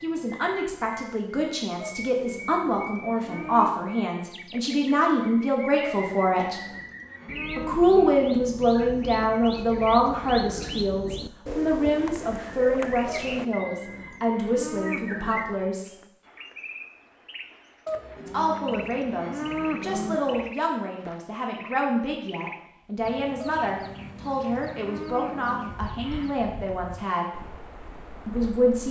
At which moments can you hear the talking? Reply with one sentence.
You can hear the talking from 0.0 to 6.6 s, from 7.5 to 15.9 s, from 18.2 to 27.3 s and from 28.2 to 28.8 s.